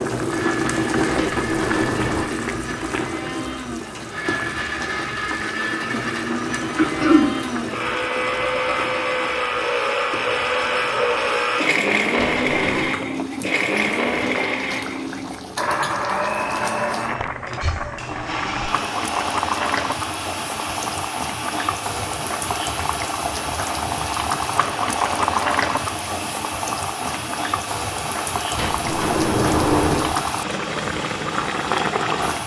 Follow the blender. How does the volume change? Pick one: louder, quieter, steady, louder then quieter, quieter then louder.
louder then quieter.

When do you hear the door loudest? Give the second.
30 s.